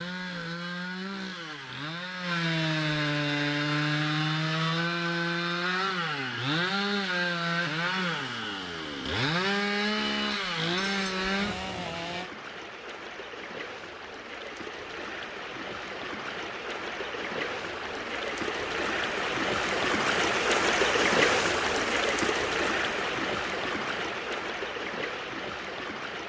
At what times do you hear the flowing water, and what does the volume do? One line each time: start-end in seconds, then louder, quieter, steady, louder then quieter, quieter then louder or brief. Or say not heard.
10.8-26.2 louder then quieter.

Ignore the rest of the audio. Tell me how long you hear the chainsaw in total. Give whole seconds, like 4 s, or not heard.
12 s.